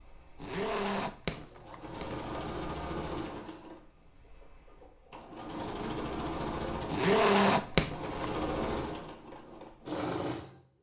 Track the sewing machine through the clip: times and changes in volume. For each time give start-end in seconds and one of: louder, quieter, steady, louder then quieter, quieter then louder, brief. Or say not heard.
0.0-10.6 louder.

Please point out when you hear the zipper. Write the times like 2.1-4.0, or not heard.
0.3-2.2, 6.8-8.3.